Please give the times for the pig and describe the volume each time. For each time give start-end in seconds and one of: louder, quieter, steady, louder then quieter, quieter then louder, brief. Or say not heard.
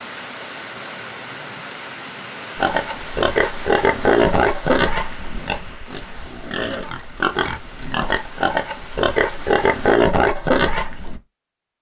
2.5-11.2 quieter then louder.